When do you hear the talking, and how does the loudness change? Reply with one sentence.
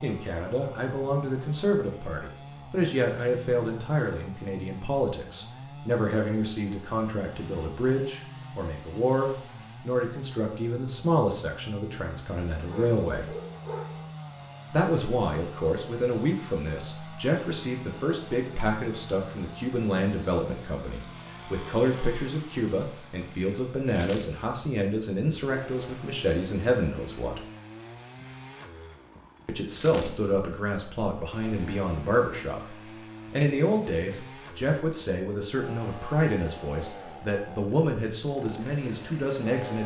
The talking can be heard from 0.0 to 13.3 s, at a steady volume; from 14.7 to 27.4 s, at a steady volume; and from 29.4 to 39.8 s, at a steady volume.